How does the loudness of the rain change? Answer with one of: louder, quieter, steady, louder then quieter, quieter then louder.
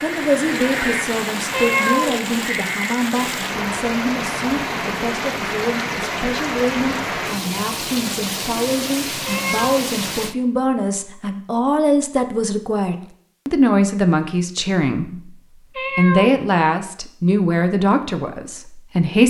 steady.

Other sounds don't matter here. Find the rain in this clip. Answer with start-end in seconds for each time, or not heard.
0.0-10.3.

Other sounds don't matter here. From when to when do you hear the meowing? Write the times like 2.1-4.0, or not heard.
1.5-2.2, 9.2-9.8, 15.8-16.4.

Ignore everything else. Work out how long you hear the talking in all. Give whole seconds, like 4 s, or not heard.
19 s.